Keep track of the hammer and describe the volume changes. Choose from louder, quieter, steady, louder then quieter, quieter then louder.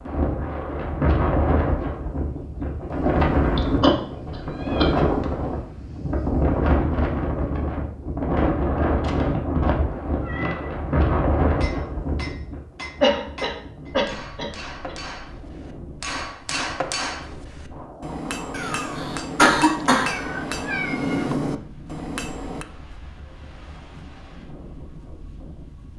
louder.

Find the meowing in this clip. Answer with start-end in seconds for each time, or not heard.
4.3-6.0, 9.0-10.7, 19.9-21.4.